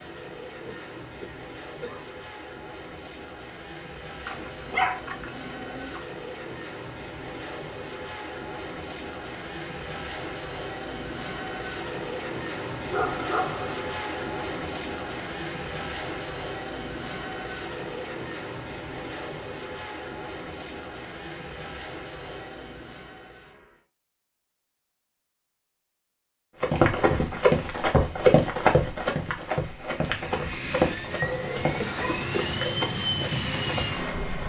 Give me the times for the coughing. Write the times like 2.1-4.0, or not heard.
0.7-2.0, 31.8-32.5.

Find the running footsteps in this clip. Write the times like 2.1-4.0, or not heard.
26.6-34.0.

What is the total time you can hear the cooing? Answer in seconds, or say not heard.
not heard.